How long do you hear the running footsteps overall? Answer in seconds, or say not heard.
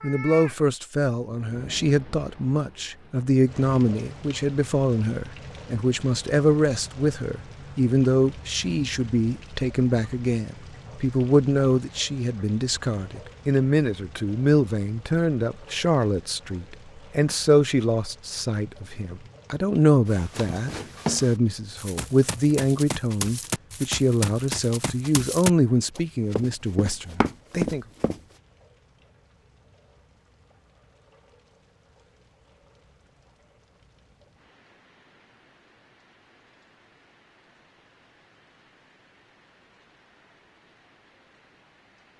8 s.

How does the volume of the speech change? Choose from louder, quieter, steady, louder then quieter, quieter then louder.
steady.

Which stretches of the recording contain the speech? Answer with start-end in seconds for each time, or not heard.
0.0-27.9.